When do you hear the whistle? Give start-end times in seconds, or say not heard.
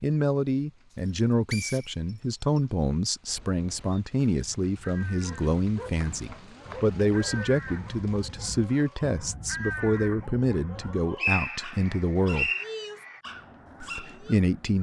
1.1-2.6, 6.0-7.0, 10.8-12.7.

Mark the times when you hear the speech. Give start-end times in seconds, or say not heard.
0.0-12.5, 13.8-14.7.